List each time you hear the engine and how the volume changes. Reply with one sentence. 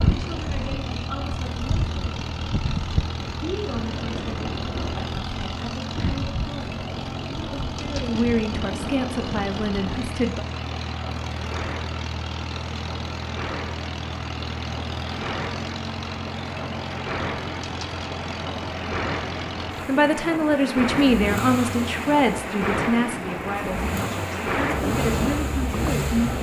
You can hear the engine from 0.0 to 26.3 s, at a steady volume.